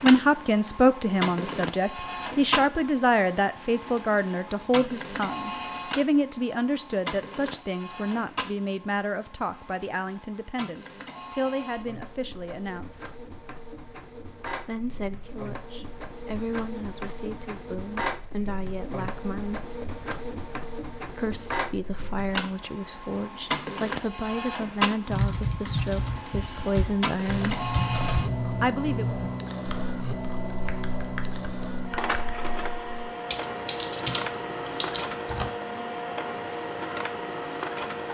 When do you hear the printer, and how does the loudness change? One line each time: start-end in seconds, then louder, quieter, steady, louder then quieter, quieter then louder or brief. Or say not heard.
0.0-38.1 quieter then louder.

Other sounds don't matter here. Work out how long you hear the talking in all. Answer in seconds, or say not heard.
25 s.